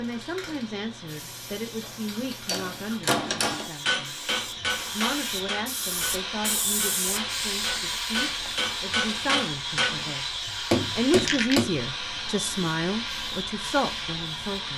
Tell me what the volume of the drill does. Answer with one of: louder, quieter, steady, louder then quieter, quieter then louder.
louder.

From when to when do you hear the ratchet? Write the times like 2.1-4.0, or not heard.
not heard.